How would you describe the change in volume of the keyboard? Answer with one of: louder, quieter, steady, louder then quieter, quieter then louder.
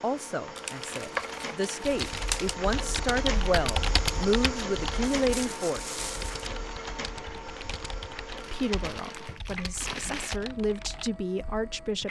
quieter.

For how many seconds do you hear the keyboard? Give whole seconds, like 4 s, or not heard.
11 s.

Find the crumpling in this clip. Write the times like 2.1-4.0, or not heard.
0.6-2.5, 5.2-6.5, 8.3-10.4.